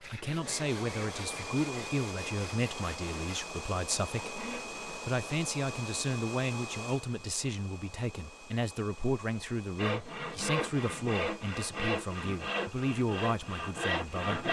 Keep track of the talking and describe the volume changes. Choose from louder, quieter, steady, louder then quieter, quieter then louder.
steady.